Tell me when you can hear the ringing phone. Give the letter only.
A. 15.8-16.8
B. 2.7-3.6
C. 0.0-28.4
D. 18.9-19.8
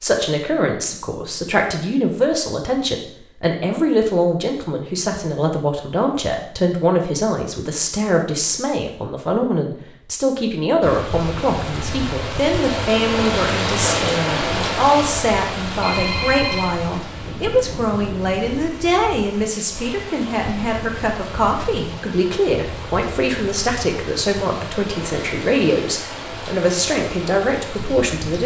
A.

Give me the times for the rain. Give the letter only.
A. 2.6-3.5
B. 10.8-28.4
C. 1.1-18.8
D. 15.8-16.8
B.